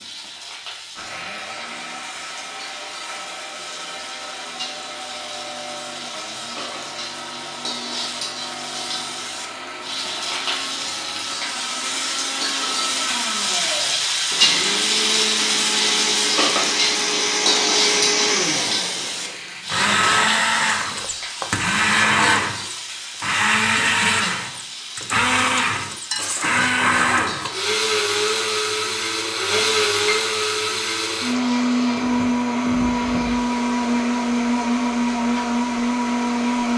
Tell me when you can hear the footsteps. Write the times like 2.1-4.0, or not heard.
not heard.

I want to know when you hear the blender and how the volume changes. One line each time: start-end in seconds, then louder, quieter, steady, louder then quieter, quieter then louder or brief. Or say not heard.
0.0-36.7 louder.